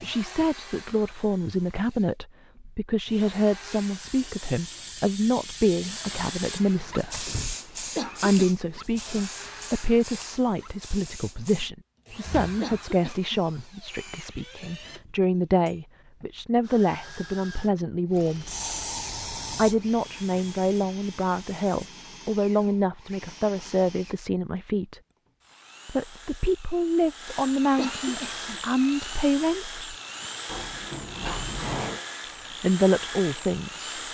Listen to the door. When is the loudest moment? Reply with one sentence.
The loudest moment of the door is at 32 seconds.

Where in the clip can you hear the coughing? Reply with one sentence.
The coughing can be heard from 8.0 to 8.5 s, from 12.6 to 13.3 s and from 27.8 to 28.6 s.